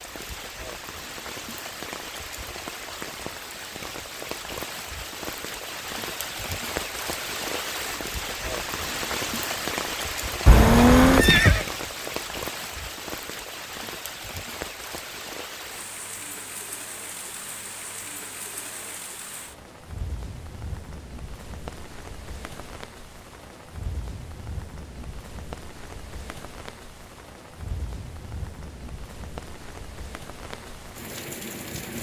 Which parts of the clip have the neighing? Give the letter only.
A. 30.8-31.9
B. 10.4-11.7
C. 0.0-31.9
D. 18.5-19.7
B.